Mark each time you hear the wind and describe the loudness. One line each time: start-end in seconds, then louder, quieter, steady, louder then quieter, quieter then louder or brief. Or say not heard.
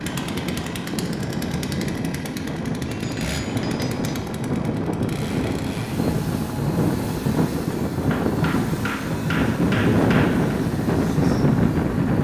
0.0-12.1 louder.